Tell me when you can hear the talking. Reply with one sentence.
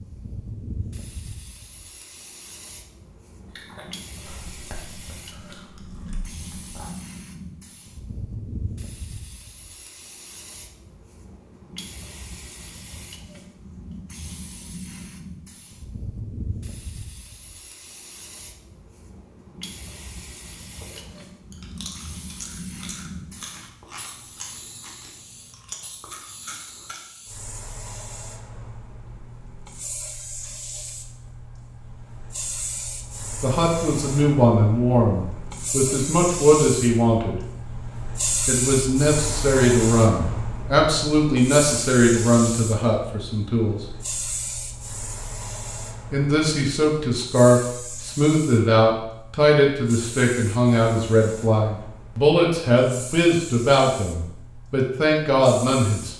You can hear the talking from 33.4 to 37.4 s, from 38.5 to 43.8 s and from 46.1 to 56.1 s.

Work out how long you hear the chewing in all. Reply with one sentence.
The chewing can be heard for 10 seconds in total.